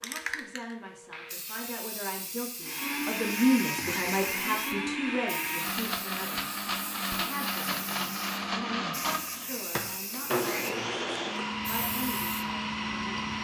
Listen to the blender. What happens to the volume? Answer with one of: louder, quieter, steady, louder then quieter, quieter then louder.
steady.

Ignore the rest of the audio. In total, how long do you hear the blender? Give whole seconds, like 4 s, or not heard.
11 s.